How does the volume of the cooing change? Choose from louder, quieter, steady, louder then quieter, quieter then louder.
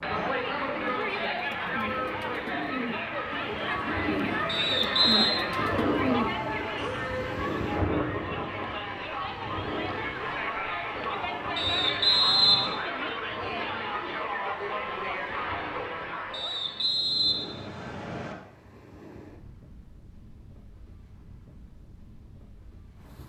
louder.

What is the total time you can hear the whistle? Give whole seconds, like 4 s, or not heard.
4 s.